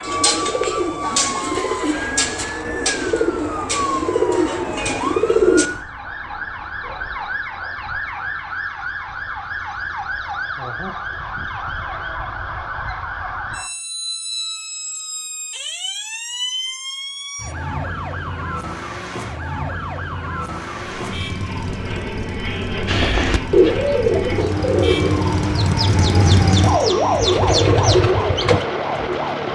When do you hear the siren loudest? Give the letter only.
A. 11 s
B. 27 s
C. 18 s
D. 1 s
B.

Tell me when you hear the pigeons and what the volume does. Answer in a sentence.
The pigeons can be heard from 0.0 to 5.7 s, at a steady volume; and from 22.9 to 28.6 s, getting quieter then louder.